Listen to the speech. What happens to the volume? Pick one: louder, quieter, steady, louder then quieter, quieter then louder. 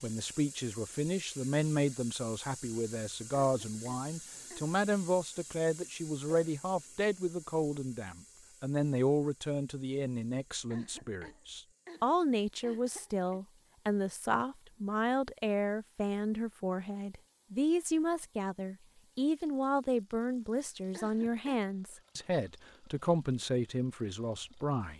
steady.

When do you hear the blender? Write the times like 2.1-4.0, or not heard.
not heard.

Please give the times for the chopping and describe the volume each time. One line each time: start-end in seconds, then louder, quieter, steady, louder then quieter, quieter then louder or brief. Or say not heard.
not heard.